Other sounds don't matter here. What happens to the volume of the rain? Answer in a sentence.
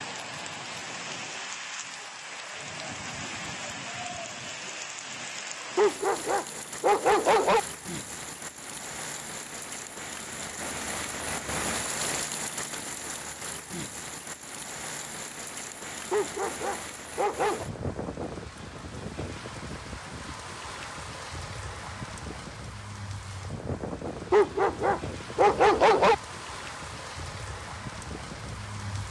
The volume of the rain stays about the same.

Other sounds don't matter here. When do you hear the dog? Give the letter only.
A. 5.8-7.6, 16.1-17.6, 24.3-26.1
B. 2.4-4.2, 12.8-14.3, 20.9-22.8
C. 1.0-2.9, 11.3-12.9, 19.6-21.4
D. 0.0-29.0
A.